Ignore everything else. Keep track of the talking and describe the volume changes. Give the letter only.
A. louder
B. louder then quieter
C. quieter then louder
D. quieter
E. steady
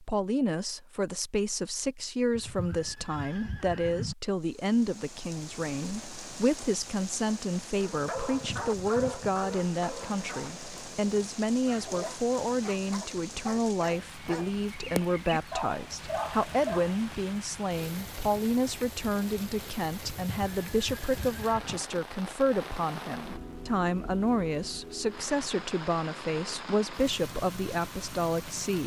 E.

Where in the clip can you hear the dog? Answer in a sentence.
The dog can be heard from 7.8 to 17.0 s.